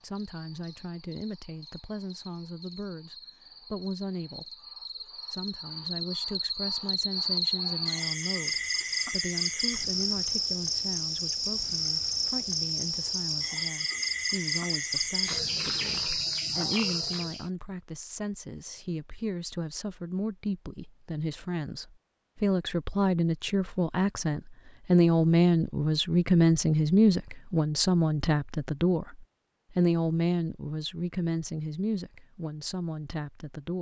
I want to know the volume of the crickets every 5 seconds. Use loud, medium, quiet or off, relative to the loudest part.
quiet, loud, loud, loud, off, off, off.